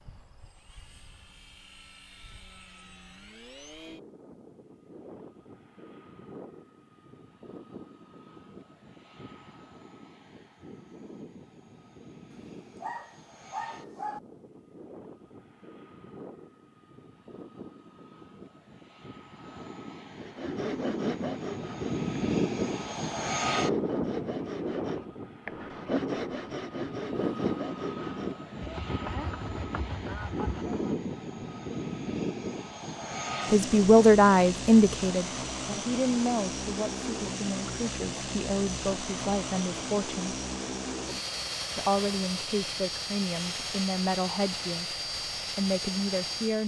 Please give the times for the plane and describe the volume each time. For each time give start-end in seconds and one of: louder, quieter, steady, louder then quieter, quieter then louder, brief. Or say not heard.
0.0-46.6 louder.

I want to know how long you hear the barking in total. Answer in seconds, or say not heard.
2 s.